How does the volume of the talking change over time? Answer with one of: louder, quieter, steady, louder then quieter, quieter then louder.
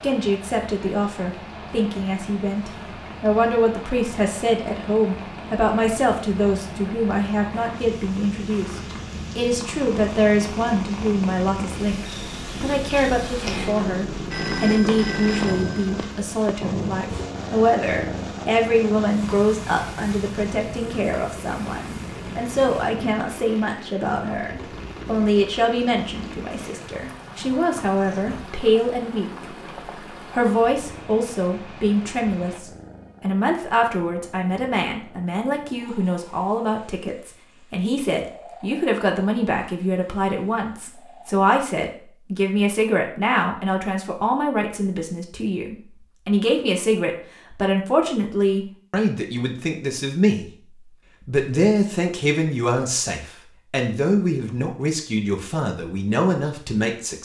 steady.